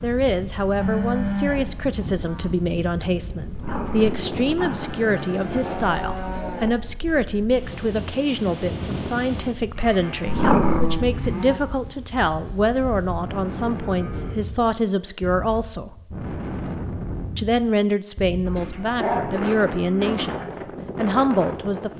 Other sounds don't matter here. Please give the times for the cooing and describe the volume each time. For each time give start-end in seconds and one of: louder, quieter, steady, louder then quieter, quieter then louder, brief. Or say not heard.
not heard.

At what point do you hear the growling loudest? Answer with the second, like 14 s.
11 s.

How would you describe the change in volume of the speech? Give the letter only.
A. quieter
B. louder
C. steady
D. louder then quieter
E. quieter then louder
C.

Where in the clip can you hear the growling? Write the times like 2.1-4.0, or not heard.
3.5-5.0, 10.2-11.1, 18.6-19.2.